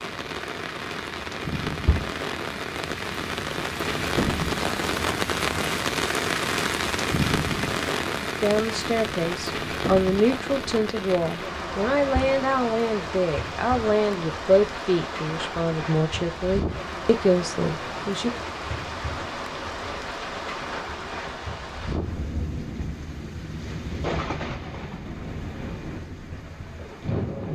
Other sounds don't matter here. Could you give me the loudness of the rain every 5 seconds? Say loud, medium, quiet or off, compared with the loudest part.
loud, loud, medium, medium, medium, medium.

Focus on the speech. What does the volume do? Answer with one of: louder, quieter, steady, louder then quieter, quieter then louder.
steady.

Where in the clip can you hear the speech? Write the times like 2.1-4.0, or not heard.
8.4-18.3.